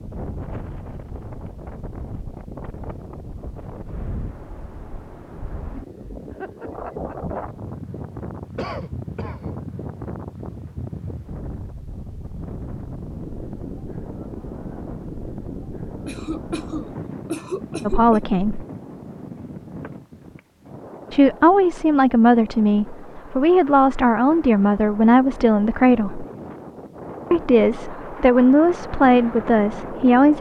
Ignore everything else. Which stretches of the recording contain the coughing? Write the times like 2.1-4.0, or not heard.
8.6-9.6, 16.1-18.4.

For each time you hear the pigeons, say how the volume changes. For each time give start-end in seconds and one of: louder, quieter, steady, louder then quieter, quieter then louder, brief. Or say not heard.
not heard.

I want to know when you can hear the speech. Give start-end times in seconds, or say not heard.
17.9-18.6, 21.1-26.2, 27.3-30.3.